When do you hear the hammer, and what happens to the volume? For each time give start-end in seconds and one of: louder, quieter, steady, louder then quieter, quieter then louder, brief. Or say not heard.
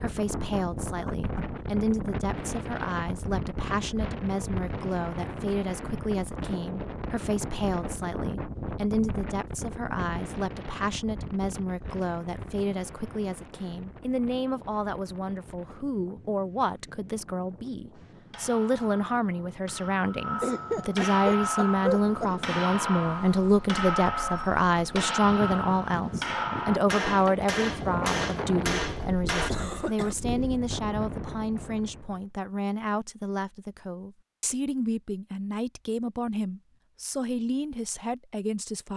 17.9-29.5 louder.